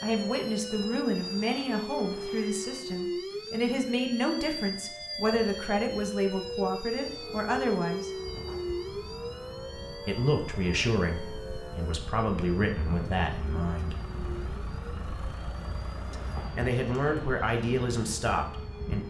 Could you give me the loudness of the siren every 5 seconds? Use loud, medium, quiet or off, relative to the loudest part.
loud, loud, medium, quiet.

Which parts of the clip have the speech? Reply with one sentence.
You can hear the speech from 0.0 to 8.1 s, from 10.1 to 13.9 s and from 16.1 to 19.0 s.